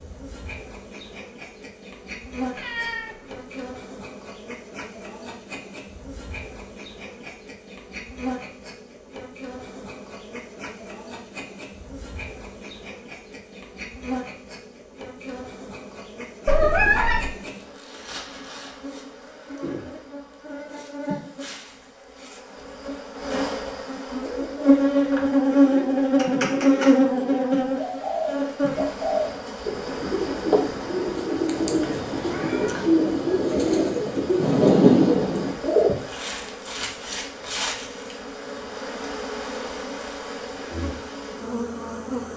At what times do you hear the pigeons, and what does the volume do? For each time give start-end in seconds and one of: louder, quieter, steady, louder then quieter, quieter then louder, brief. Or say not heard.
24.2-36.0 louder.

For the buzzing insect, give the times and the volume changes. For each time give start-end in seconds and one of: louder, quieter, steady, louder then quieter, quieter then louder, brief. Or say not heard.
0.0-42.3 louder then quieter.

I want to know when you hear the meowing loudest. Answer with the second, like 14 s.
17 s.